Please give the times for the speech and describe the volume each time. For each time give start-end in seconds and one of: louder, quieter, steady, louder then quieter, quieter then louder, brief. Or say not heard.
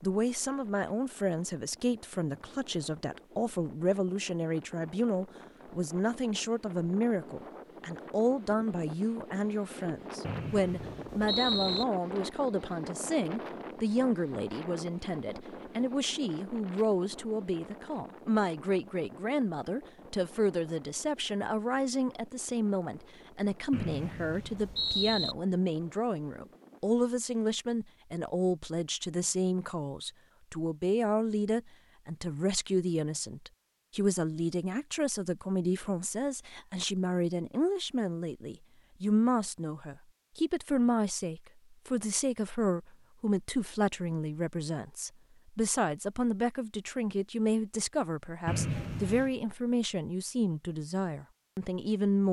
0.0-52.2 steady.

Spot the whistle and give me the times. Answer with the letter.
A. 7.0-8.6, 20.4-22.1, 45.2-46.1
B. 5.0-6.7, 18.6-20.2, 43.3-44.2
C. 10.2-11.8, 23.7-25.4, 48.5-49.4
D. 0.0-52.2
C.